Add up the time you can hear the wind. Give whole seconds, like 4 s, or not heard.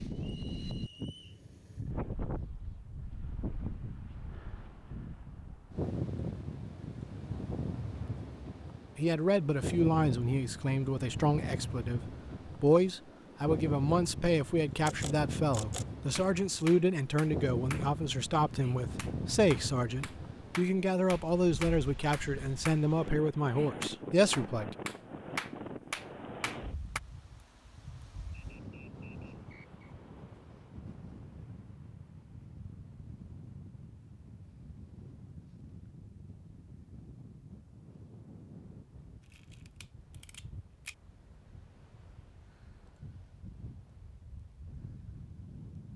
46 s.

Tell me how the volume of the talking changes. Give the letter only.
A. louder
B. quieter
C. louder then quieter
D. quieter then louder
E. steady
E.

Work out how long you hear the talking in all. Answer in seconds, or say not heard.
15 s.